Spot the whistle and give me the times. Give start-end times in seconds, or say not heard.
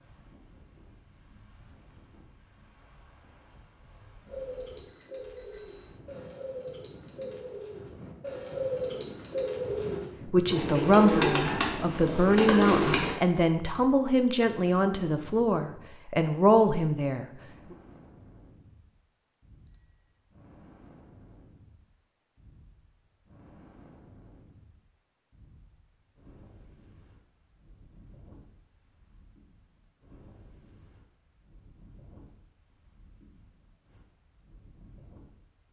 not heard.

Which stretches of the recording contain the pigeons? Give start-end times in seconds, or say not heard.
4.2-13.2.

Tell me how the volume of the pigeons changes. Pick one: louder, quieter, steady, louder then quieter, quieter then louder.
louder.